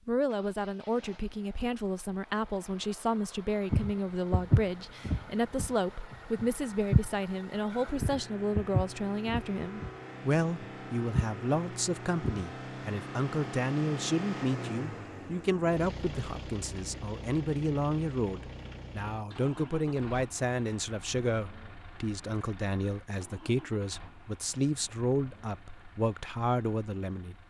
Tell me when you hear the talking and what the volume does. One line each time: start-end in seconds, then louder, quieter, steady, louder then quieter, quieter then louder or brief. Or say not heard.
0.1-27.4 steady.